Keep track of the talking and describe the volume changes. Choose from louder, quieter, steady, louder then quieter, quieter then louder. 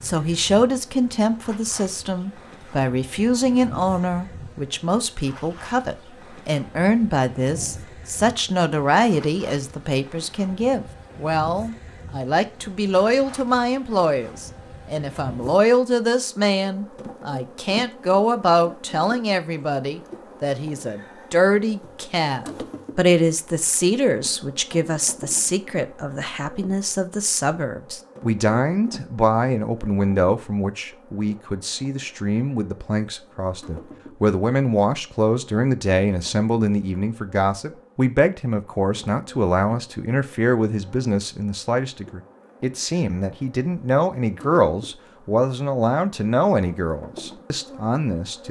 steady.